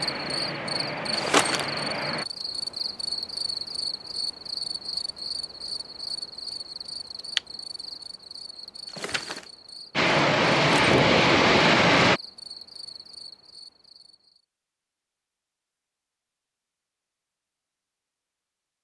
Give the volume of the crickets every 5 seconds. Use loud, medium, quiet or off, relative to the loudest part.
loud, medium, quiet, off.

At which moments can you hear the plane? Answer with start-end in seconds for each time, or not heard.
0.0-2.2, 9.9-12.2.